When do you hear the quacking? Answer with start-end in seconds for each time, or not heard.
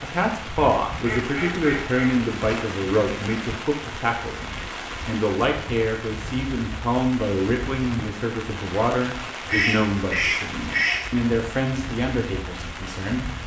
1.1-2.7, 9.4-11.2.